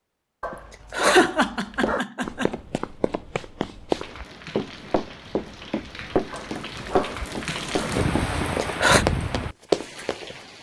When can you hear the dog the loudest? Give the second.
1 s.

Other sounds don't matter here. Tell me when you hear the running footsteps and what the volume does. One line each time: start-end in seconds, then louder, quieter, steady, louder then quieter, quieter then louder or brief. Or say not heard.
1.8-10.2 louder.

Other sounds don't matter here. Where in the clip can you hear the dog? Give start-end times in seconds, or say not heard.
0.4-2.0, 6.3-8.0.